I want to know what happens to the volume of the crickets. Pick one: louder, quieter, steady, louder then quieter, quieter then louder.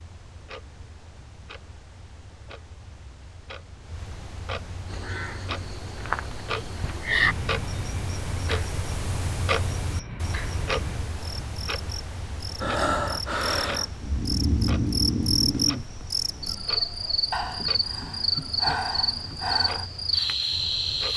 quieter then louder.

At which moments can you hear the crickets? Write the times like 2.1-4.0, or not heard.
4.9-21.1.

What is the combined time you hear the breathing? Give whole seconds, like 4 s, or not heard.
7 s.